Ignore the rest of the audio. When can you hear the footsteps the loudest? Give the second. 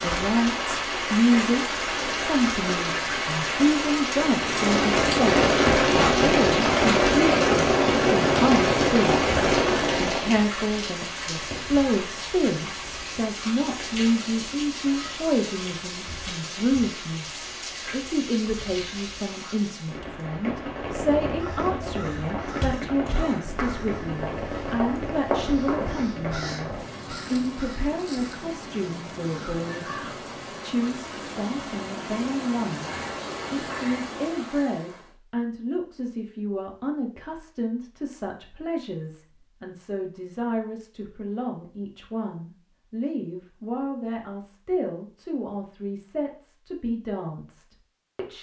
25 s.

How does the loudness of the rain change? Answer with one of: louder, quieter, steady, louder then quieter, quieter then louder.
quieter.